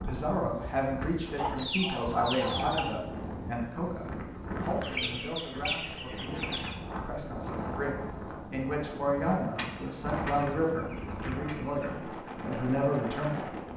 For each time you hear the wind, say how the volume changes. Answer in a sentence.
The wind can be heard from 0.0 to 13.7 s, at a steady volume.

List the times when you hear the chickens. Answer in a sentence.
The chickens can be heard from 1.4 to 3.0 s, from 4.8 to 6.8 s and from 9.6 to 11.9 s.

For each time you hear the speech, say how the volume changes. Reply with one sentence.
The speech can be heard from 0.0 to 13.5 s, getting quieter then louder.